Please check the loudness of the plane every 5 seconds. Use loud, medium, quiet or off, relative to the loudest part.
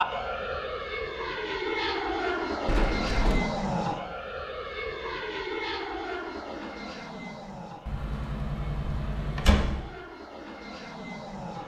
loud, medium, medium.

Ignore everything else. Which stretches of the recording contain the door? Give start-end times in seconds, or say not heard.
2.6-3.4, 7.8-9.8.